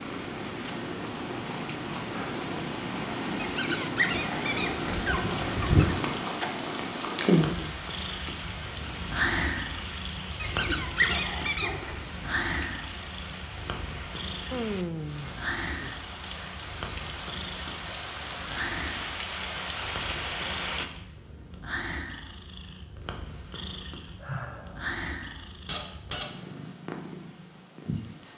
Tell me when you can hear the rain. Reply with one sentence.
The rain can be heard from 0.0 to 20.9 s.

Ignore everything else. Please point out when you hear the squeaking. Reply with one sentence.
The squeaking can be heard from 3.4 to 6.0 s, from 10.4 to 12.0 s and from 25.6 to 26.3 s.